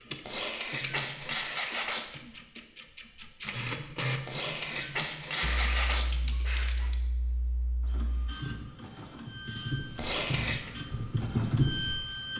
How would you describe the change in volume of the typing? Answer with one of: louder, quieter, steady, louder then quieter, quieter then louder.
louder.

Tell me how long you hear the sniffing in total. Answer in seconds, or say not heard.
5 s.